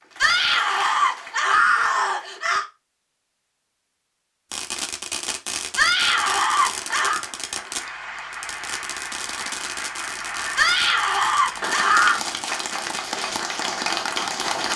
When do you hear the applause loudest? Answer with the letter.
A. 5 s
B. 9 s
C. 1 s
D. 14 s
D.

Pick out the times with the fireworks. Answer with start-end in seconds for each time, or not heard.
4.5-13.0.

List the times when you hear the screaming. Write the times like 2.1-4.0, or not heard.
0.2-2.6, 5.8-7.2, 10.6-12.2.